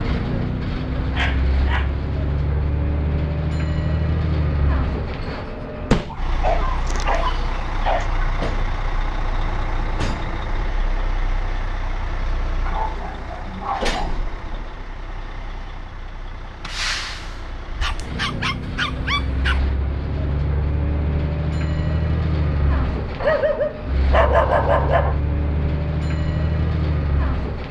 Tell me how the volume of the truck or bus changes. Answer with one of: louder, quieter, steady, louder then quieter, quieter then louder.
quieter then louder.